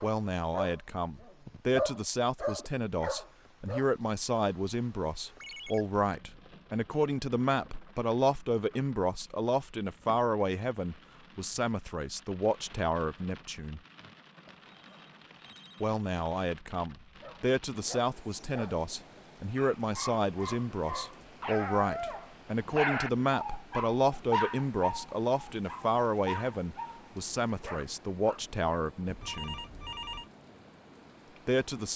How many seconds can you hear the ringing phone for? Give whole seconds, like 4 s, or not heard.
3 s.